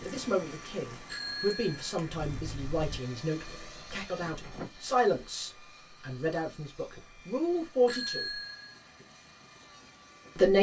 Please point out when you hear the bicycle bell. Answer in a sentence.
The bicycle bell can be heard from 1.1 to 3.0 s and from 7.8 to 8.8 s.